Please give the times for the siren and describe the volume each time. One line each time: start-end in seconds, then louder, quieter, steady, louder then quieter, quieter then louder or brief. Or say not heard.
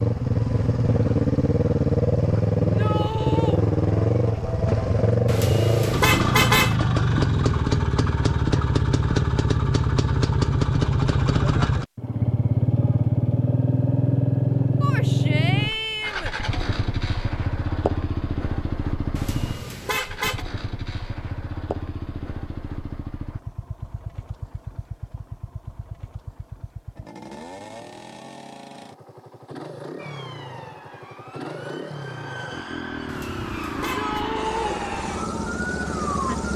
29.9-36.5 louder.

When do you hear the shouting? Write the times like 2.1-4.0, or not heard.
2.6-3.6, 14.8-16.4, 33.8-34.8.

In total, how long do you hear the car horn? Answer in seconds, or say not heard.
4 s.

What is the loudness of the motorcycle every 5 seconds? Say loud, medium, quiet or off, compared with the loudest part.
loud, loud, loud, medium, quiet, quiet, quiet, medium.